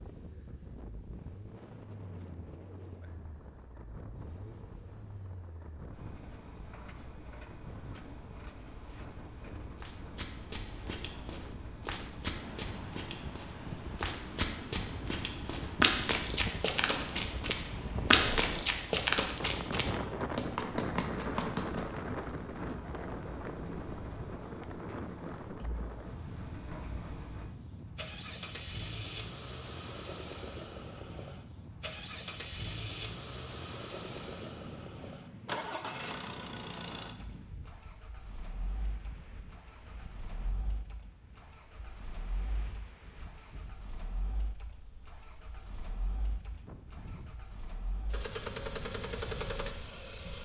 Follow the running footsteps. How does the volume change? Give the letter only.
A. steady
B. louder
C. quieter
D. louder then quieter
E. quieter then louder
D.